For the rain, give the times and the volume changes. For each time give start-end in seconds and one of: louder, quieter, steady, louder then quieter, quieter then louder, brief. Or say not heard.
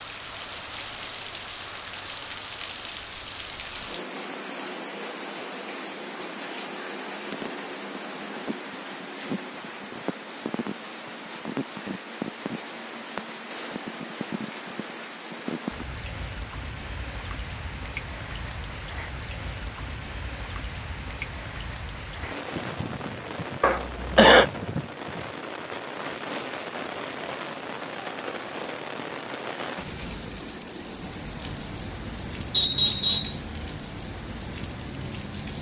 0.0-35.5 steady.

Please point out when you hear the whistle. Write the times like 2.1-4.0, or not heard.
32.5-33.4.